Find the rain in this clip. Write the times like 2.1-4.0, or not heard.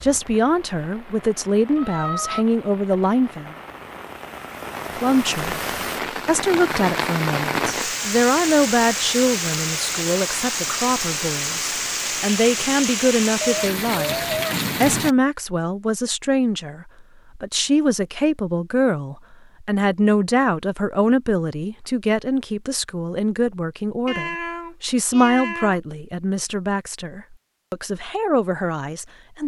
0.0-15.2.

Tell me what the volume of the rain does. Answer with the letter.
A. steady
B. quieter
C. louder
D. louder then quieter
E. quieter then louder
C.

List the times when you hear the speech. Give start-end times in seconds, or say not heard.
0.0-3.5, 5.0-29.4.